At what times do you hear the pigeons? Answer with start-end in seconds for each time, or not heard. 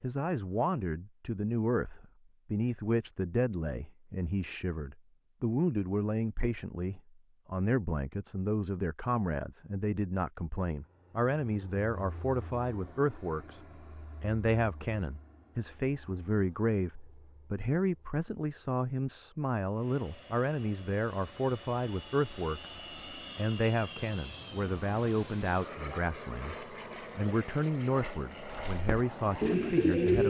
28.4-30.2.